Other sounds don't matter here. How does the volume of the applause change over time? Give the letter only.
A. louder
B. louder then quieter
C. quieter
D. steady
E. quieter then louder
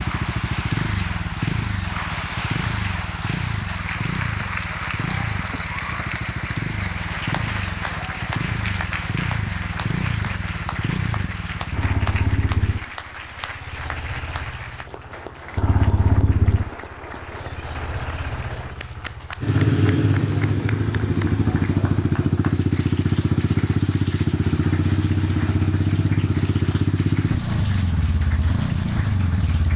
C.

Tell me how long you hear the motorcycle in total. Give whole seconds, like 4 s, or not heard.
30 s.